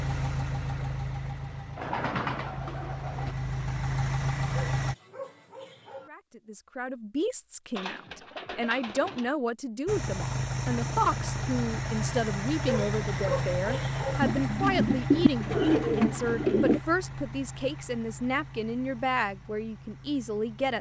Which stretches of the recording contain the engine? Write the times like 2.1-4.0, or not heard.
0.0-5.0, 9.8-20.7.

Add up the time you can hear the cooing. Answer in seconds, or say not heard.
6 s.